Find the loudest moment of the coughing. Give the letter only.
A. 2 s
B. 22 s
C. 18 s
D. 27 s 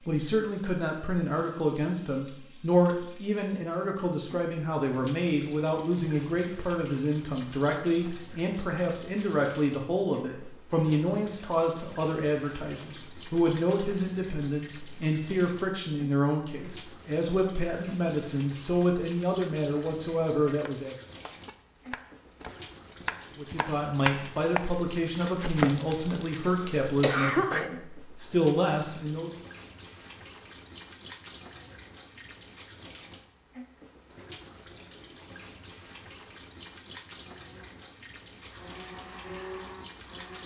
D.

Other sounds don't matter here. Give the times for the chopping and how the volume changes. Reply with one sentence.
The chopping can be heard from 20.5 to 25.9 s, getting louder.